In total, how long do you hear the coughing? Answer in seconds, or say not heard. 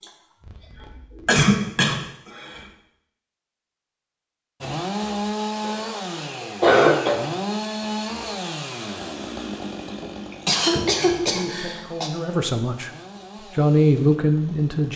6 s.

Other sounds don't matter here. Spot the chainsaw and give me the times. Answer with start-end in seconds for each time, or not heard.
4.6-14.9.